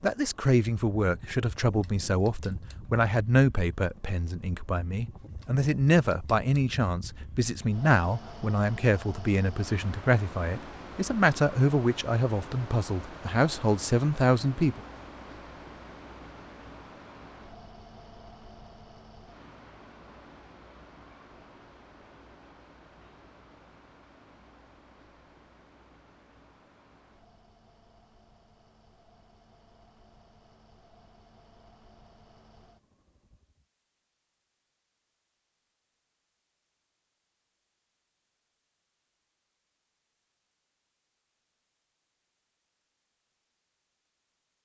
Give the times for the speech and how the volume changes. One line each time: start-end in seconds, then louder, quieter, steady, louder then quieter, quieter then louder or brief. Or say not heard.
0.0-14.8 steady.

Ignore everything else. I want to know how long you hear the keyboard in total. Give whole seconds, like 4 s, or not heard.
not heard.